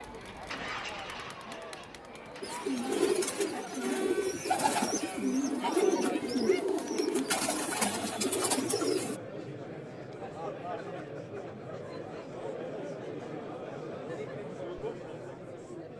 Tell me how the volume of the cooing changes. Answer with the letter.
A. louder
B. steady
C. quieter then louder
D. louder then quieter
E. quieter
B.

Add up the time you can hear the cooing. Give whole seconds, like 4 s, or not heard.
7 s.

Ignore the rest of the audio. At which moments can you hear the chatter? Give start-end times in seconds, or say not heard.
0.0-15.9.